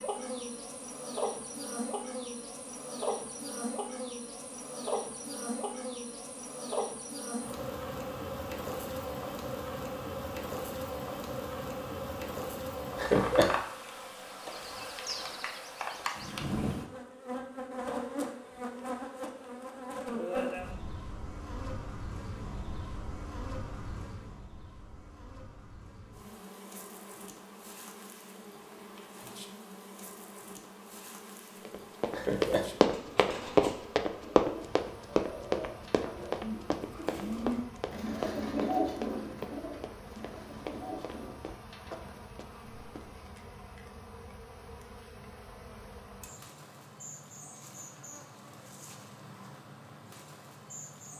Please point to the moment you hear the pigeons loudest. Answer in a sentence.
The loudest moment of the pigeons is at 39 seconds.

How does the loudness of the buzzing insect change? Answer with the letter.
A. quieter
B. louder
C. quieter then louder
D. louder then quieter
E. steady
A.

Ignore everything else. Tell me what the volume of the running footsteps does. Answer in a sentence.
The volume of the running footsteps goes down.